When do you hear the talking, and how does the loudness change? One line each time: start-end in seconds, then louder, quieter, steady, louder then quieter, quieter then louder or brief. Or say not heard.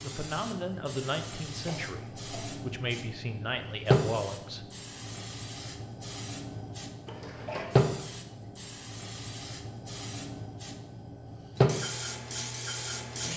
0.0-4.7 quieter then louder.